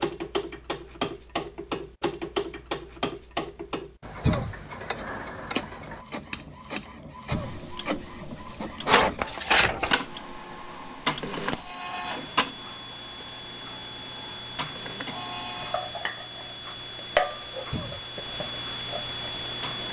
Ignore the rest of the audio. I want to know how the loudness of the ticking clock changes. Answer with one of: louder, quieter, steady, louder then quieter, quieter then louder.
quieter then louder.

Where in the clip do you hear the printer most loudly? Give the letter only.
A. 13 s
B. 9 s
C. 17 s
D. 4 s
B.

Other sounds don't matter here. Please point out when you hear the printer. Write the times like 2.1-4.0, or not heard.
4.9-15.8, 17.9-19.8.